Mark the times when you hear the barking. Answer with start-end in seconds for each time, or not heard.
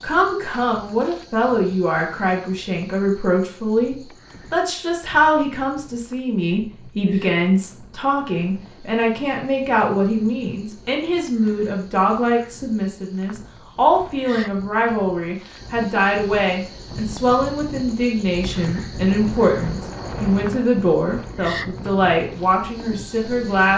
not heard.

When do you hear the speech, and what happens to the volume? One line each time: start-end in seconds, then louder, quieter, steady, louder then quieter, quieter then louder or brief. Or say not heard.
0.0-23.7 steady.